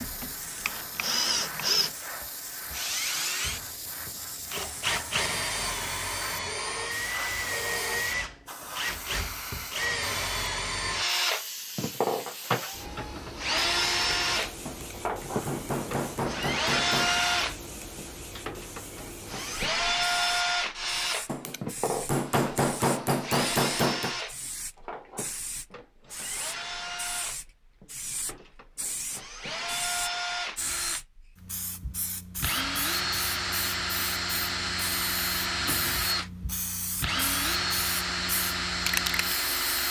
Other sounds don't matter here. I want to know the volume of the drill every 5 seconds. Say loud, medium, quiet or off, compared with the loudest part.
loud, loud, loud, loud, loud, medium, loud, loud.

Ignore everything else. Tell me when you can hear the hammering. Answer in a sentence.
You can hear the hammering from 14.7 to 17.2 s and from 21.2 to 24.1 s.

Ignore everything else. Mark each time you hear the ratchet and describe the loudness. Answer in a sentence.
The ratchet can't be heard in this clip.